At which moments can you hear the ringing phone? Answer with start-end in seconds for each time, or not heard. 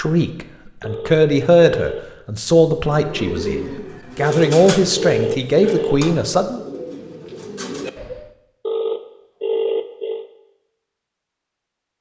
0.8-2.0, 4.2-6.0, 8.7-10.2.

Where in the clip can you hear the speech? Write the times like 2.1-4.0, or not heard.
0.0-6.6.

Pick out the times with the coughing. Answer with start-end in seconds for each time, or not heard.
not heard.